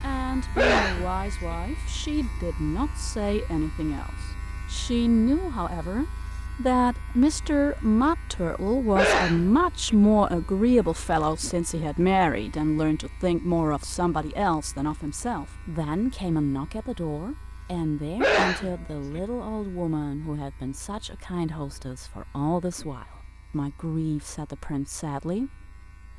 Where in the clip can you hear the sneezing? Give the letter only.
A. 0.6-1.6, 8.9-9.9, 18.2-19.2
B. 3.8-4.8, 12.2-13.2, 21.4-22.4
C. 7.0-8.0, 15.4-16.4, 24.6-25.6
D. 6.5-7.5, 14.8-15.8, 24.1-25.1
A.